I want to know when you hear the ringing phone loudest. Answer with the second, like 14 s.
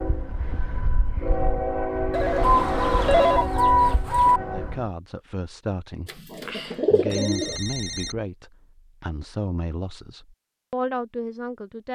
3 s.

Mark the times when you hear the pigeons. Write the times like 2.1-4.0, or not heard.
2.4-4.4, 6.4-7.5.